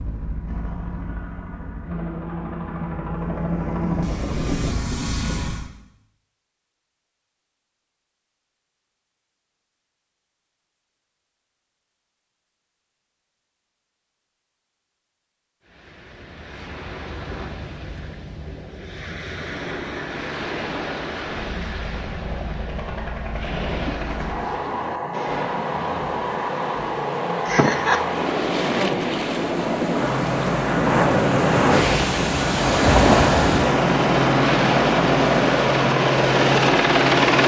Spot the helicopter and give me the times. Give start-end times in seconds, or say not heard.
0.0-5.7, 19.4-37.4.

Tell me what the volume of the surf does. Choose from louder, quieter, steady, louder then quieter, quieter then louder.
louder.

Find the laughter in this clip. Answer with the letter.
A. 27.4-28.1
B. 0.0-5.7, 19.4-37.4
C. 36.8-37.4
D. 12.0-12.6
A.